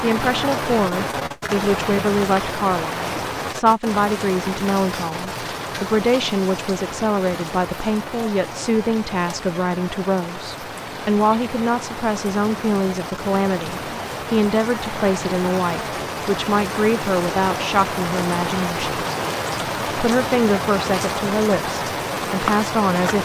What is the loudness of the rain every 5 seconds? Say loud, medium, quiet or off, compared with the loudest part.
loud, medium, medium, loud, loud.